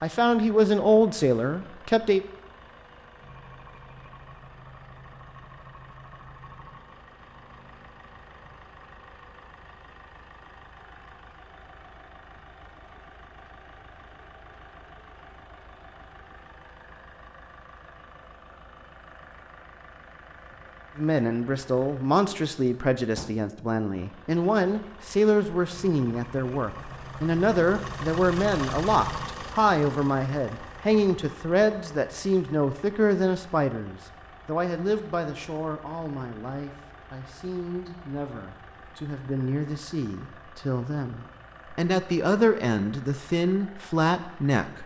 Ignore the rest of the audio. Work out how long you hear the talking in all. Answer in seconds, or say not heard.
26 s.